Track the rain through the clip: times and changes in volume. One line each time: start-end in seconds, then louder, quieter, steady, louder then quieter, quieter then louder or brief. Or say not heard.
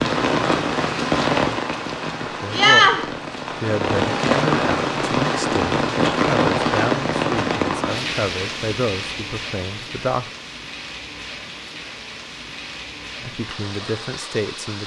0.0-14.8 quieter.